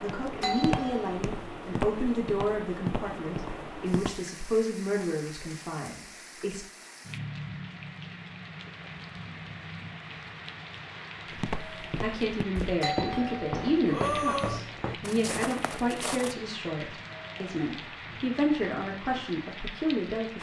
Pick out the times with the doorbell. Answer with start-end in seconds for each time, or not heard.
0.4-1.1, 12.8-14.6.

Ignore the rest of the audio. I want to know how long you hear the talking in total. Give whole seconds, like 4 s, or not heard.
15 s.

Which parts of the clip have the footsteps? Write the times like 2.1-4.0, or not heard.
0.0-4.2, 11.3-16.4.